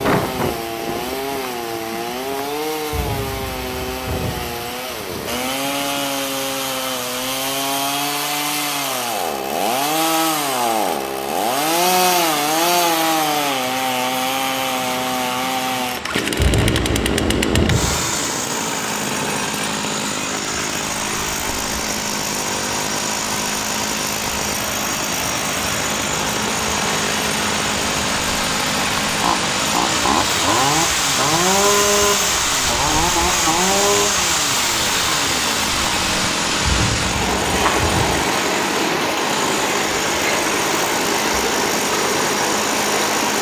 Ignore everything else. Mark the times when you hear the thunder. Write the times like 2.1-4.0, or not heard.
2.9-4.5, 16.4-17.9, 36.6-38.2.